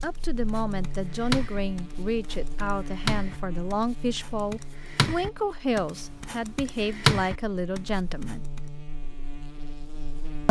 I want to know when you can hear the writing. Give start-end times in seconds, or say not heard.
0.0-8.6.